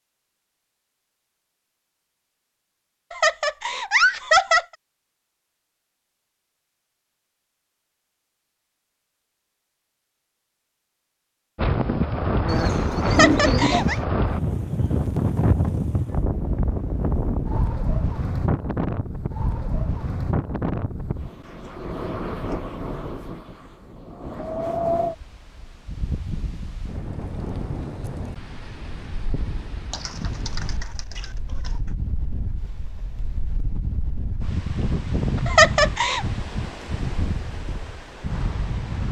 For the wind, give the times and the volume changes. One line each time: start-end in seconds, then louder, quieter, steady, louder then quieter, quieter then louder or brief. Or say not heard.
11.6-39.0 quieter then louder.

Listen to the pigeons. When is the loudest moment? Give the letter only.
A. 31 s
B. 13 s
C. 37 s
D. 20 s
B.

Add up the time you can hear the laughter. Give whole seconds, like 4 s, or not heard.
3 s.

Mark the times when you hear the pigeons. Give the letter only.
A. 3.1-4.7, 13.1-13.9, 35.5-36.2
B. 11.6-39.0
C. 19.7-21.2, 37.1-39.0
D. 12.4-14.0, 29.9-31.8
D.